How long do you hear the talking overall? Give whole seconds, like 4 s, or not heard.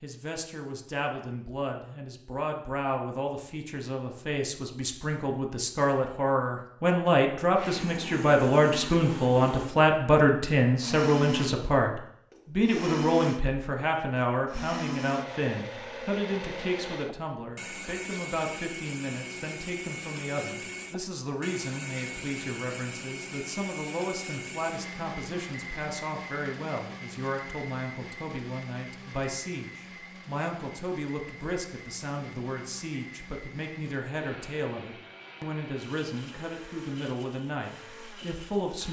39 s.